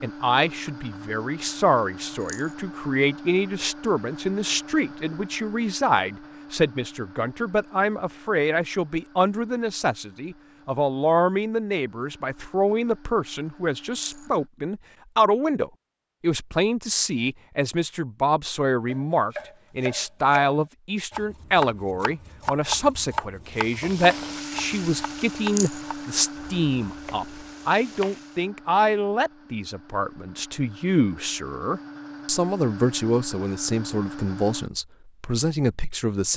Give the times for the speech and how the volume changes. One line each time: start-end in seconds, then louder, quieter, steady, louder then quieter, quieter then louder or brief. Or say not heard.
0.0-36.3 steady.